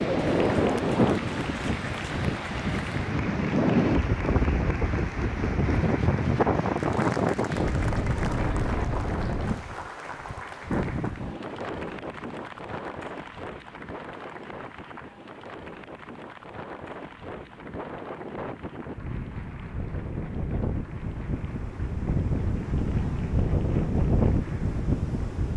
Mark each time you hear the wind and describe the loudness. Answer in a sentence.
You can hear the wind from 0.0 to 25.5 s, getting quieter then louder.